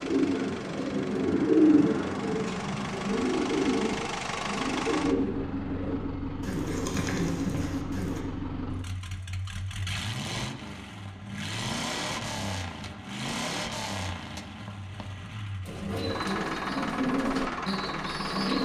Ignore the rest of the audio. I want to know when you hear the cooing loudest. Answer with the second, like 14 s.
2 s.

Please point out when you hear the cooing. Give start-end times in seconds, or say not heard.
0.0-8.2, 15.7-18.6.